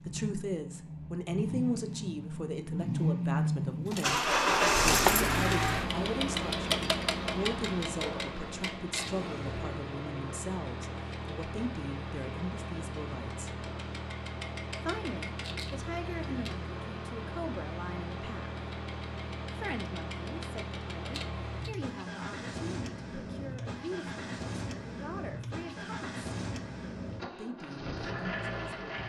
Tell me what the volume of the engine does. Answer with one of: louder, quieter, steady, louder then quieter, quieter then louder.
quieter.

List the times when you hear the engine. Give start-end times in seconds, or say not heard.
0.0-29.0.